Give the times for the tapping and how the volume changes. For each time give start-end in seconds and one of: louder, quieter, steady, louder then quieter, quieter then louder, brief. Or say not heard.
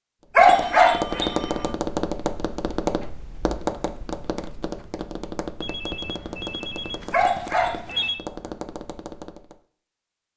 0.3-9.6 quieter.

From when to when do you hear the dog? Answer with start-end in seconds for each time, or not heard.
0.3-1.3, 7.1-8.5.